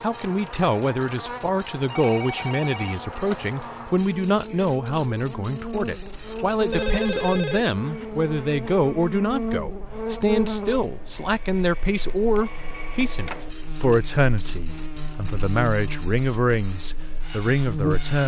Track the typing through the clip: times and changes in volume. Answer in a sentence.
The typing can't be heard in this clip.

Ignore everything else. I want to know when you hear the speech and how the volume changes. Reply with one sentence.
You can hear the speech from 0.0 to 18.2 s, at a steady volume.